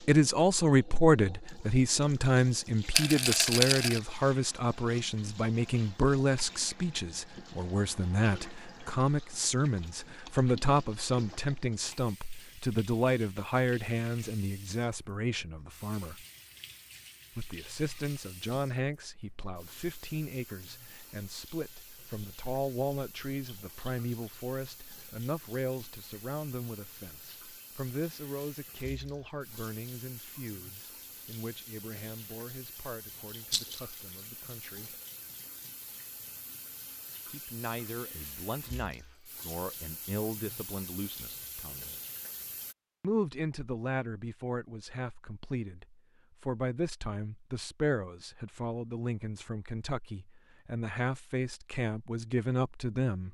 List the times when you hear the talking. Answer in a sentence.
The talking can be heard from 0.0 to 16.2 s, from 17.4 to 35.0 s, from 37.3 to 42.0 s and from 43.0 to 53.2 s.